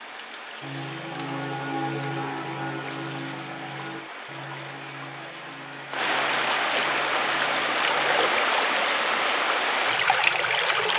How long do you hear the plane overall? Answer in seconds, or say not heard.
not heard.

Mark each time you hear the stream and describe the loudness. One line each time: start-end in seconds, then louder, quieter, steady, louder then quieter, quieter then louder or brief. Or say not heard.
0.0-10.9 louder.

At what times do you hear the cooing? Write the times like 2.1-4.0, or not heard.
not heard.